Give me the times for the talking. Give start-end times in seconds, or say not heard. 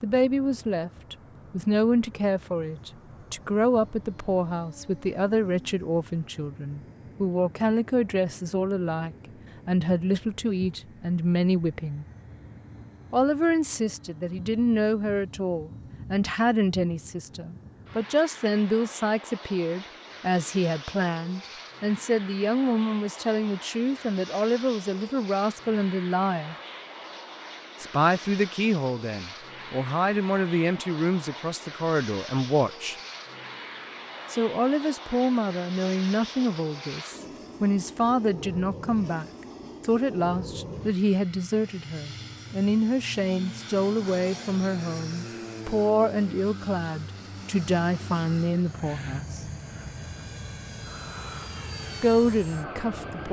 0.0-12.1, 13.1-26.6, 27.8-33.0, 34.3-49.4, 52.0-53.2.